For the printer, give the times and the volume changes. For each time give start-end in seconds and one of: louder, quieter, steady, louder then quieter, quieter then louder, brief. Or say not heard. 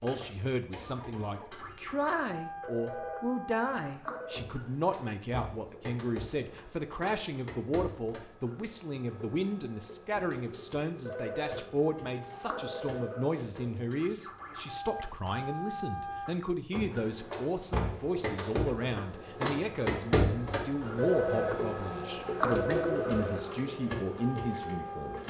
0.0-25.2 louder.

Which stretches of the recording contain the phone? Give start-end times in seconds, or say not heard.
2.6-4.5, 11.1-13.3, 20.9-23.6.